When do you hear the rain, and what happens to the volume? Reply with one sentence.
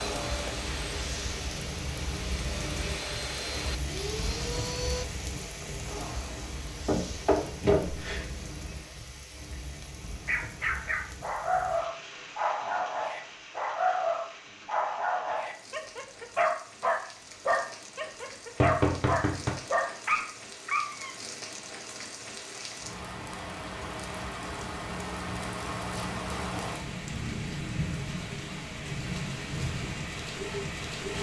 You can hear the rain from 0.0 to 31.1 s, getting quieter then louder.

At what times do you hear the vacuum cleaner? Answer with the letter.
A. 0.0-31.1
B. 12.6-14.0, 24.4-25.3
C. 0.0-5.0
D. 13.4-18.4
C.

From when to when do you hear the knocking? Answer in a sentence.
The knocking can be heard from 6.8 to 8.2 s and from 18.6 to 19.6 s.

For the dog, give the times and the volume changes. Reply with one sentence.
The dog can be heard from 10.2 to 21.1 s, at a steady volume.